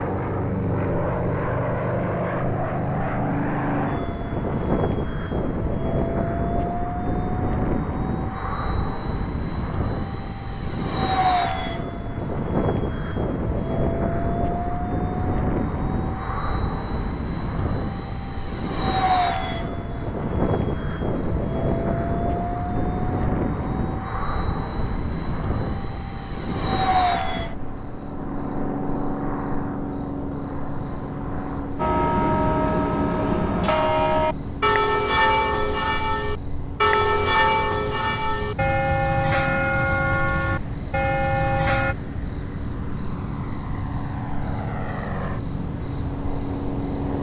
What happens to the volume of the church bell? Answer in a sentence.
The volume of the church bell stays about the same.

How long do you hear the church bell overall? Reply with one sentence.
You can hear the church bell for 10 seconds altogether.